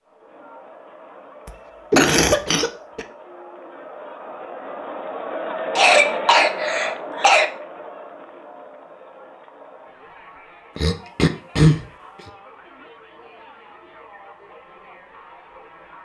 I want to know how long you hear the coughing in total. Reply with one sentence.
You can hear the coughing for 4 seconds altogether.